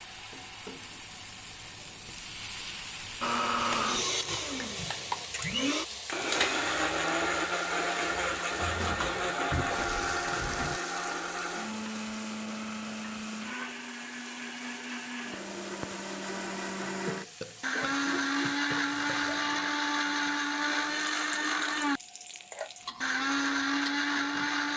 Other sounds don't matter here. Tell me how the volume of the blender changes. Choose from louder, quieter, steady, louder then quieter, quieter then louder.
quieter then louder.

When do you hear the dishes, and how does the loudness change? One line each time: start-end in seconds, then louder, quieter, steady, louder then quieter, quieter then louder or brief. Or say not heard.
not heard.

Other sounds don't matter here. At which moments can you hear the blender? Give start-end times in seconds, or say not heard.
3.2-24.7.